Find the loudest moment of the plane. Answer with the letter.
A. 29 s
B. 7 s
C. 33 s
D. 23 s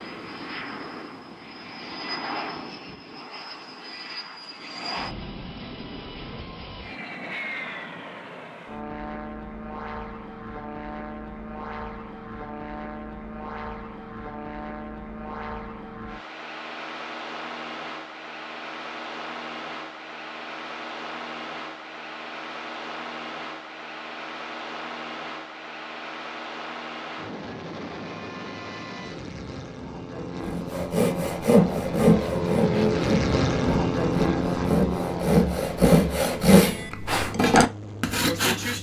C.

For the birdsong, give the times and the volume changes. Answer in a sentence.
The birdsong can't be heard in this clip.